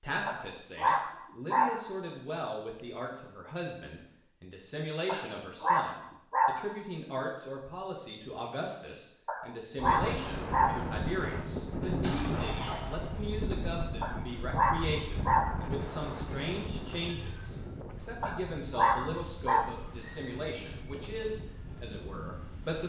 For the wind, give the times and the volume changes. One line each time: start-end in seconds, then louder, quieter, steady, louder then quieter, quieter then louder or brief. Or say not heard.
9.8-22.8 quieter.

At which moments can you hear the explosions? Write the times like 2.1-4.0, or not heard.
11.8-13.4.